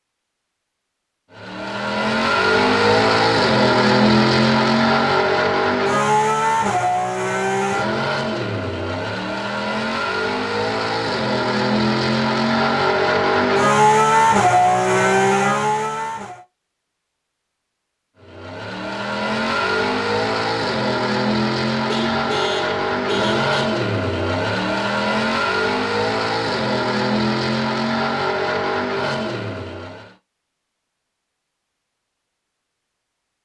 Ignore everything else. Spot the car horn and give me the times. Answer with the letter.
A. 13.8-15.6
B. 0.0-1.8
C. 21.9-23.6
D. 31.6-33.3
C.